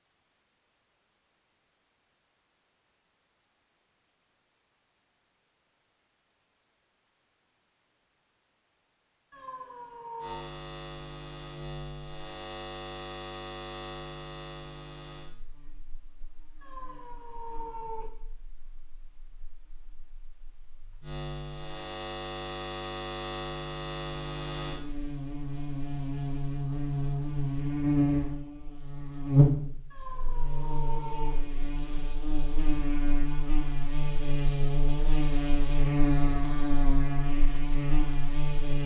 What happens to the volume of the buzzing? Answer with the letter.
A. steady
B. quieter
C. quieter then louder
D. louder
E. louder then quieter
C.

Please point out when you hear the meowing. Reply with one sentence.
You can hear the meowing from 9.3 to 10.5 s, from 16.6 to 18.1 s and from 29.9 to 31.4 s.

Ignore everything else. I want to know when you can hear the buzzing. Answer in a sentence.
The buzzing can be heard from 10.2 to 38.8 s.